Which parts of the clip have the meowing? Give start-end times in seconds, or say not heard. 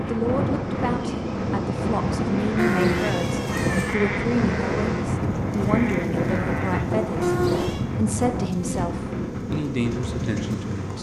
2.5-4.0, 7.2-7.8.